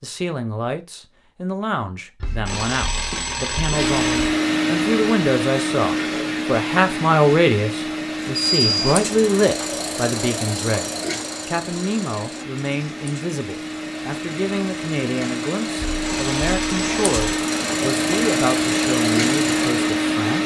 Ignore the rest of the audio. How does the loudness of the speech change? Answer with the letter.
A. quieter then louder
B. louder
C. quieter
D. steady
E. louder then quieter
E.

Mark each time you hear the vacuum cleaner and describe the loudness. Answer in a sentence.
The vacuum cleaner can be heard from 3.7 to 20.4 s, getting quieter then louder.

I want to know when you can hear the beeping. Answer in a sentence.
The beeping can be heard from 2.2 to 4.3 s, from 8.3 to 8.8 s and from 15.8 to 17.4 s.